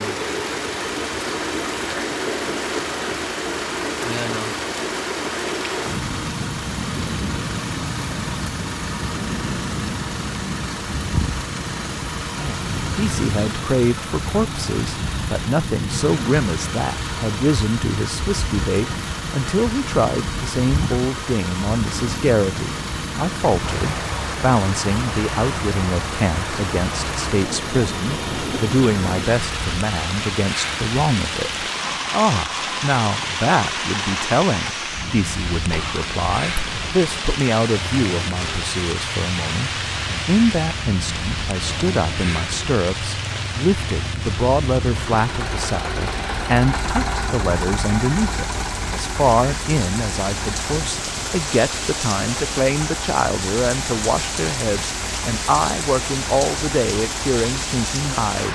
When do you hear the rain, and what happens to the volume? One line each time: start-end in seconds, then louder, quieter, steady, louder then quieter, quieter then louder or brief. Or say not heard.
0.0-58.5 steady.